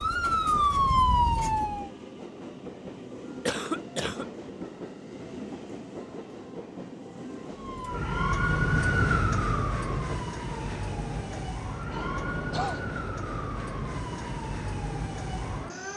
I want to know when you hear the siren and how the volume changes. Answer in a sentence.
The siren can be heard briefly from 0.0 to 1.9 s; and from 7.5 to 15.9 s, getting quieter.